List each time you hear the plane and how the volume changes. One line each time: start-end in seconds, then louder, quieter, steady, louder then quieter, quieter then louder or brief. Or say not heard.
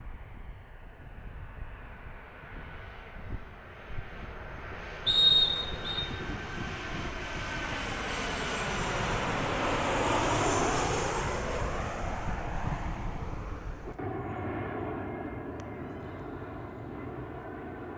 0.0-17.9 louder then quieter.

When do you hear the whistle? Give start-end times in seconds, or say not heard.
5.0-6.0.